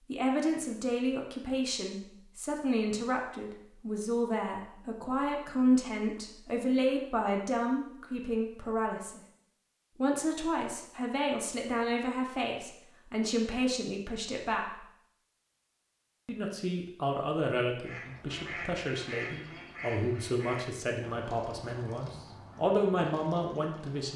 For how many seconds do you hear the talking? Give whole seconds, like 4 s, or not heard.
22 s.